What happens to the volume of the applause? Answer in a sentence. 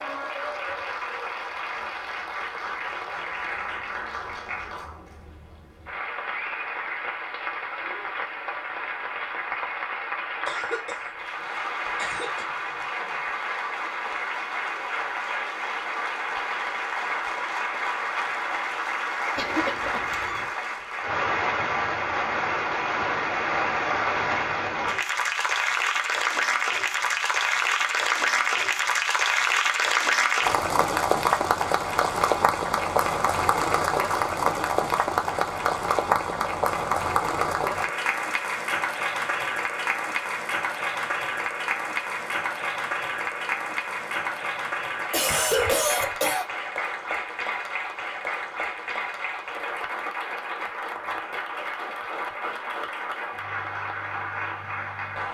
The volume of the applause goes up, then down.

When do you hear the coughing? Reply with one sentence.
You can hear the coughing from 10.4 to 11.2 s, from 11.9 to 12.4 s, from 19.4 to 20.5 s and from 45.1 to 46.5 s.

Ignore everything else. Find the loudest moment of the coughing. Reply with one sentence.
The loudest moment of the coughing is at 46 seconds.